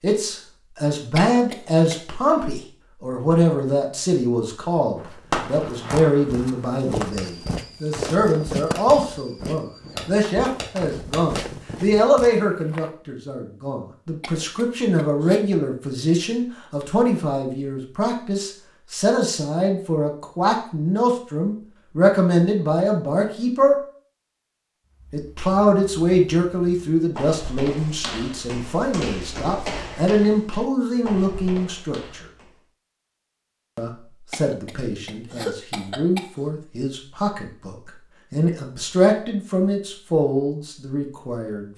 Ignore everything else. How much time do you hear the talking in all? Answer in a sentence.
You can hear the talking for 39 seconds altogether.